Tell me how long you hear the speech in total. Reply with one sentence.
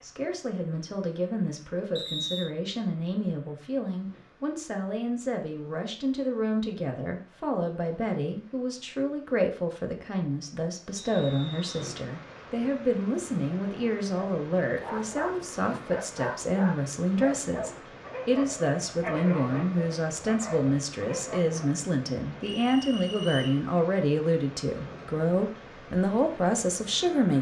The speech can be heard for 27 seconds in total.